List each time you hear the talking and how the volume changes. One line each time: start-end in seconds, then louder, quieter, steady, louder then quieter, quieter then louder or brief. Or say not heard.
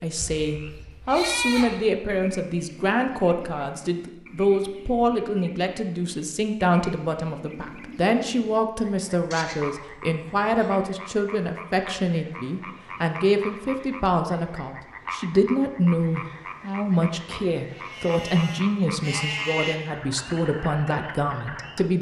0.0-21.9 steady.